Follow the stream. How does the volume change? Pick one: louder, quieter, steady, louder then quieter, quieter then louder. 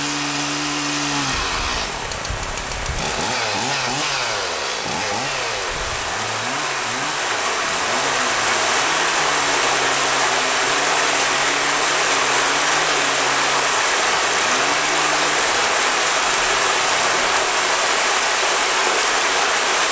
louder.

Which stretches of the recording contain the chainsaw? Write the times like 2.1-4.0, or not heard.
0.0-17.6.